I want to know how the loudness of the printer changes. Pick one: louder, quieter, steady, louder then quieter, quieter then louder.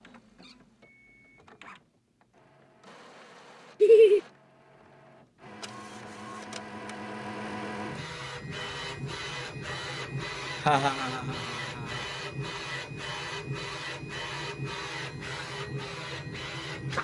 louder.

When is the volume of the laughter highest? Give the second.
4 s.